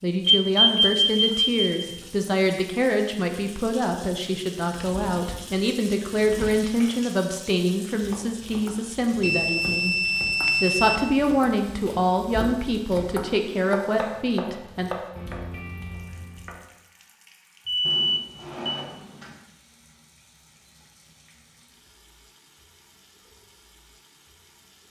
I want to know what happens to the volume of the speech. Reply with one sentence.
The loudness of the speech stays about the same.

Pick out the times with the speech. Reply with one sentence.
The speech can be heard from 0.0 to 9.9 s and from 10.6 to 14.9 s.